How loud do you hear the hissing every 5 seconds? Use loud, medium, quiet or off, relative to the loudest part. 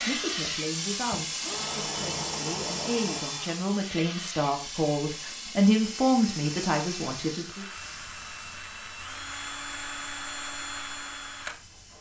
loud, medium, quiet.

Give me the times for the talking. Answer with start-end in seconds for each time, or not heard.
0.1-7.7.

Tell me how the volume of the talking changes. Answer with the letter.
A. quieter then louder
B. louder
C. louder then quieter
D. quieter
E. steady
B.